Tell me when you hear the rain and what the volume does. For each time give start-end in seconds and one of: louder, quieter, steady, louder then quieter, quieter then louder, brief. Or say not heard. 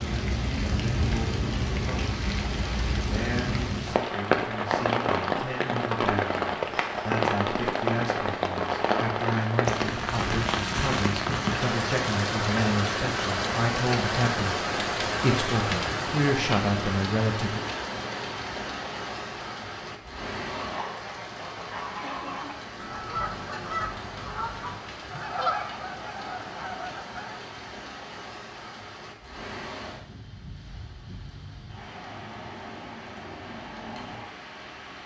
0.0-35.0 quieter.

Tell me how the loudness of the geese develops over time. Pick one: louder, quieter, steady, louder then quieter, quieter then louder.
louder then quieter.